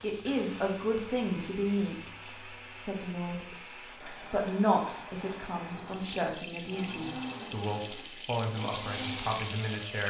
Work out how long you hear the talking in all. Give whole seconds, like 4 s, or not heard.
10 s.